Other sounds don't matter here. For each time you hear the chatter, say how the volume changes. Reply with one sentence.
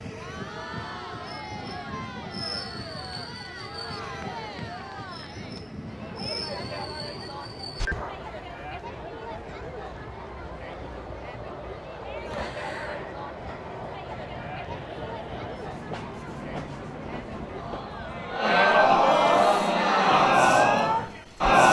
The chatter can be heard from 0.1 to 21.6 s, getting louder.